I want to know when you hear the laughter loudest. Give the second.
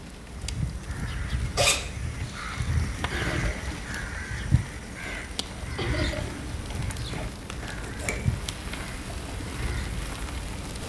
6 s.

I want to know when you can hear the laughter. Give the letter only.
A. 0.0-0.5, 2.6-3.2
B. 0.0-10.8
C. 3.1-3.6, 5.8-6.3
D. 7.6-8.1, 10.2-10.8
C.